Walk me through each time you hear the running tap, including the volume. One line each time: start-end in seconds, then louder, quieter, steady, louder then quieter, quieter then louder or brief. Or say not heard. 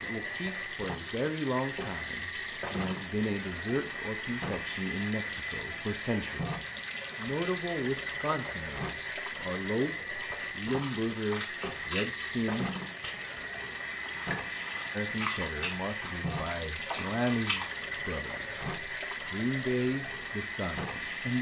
0.0-21.3 steady.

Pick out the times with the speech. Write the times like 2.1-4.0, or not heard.
0.0-12.7, 14.9-21.3.